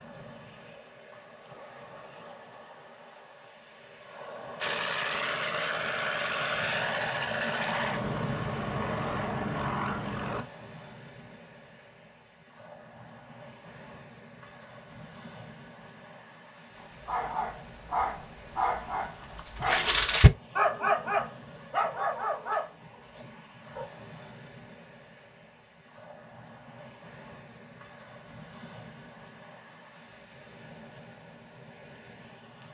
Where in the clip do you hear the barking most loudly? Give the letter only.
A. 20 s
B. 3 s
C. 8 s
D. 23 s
A.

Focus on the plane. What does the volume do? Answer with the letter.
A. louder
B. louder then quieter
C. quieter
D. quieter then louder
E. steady
E.